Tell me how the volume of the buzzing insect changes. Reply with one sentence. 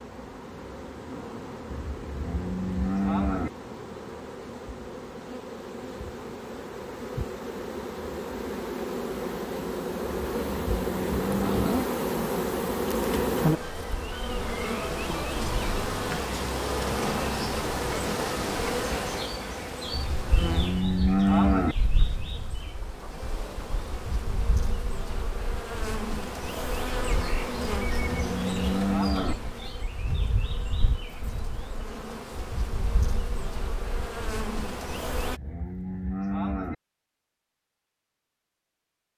The volume of the buzzing insect goes up, then down.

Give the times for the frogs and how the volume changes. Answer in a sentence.
The frogs can't be heard in this clip.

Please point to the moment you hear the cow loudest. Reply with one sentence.
The volume of the cow peaks at 21 seconds.